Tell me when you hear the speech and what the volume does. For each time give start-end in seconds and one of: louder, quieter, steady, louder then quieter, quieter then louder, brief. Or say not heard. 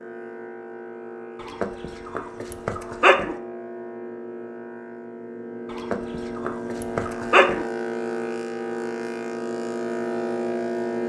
not heard.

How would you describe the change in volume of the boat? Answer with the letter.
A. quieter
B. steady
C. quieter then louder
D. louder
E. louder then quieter
D.